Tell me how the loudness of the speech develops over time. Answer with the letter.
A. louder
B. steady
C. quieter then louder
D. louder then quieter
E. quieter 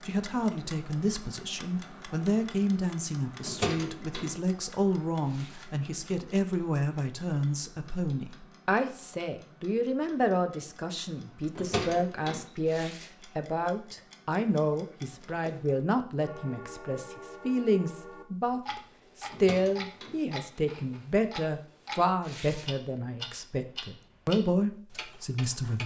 B.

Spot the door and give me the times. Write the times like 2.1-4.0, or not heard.
3.4-4.3, 11.6-12.4, 19.2-20.2.